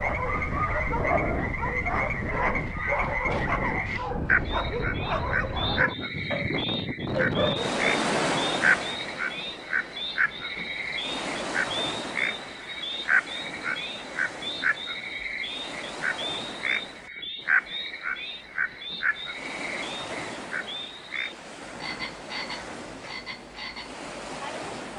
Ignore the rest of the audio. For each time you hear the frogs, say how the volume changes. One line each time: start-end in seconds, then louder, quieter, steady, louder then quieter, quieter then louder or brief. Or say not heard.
0.0-24.9 quieter.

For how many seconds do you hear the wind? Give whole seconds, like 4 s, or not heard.
25 s.